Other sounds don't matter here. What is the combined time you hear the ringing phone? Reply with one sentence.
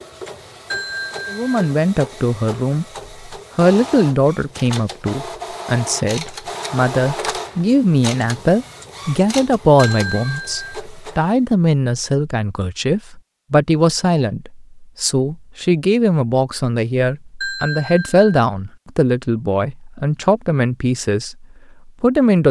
You can hear the ringing phone for 3 seconds altogether.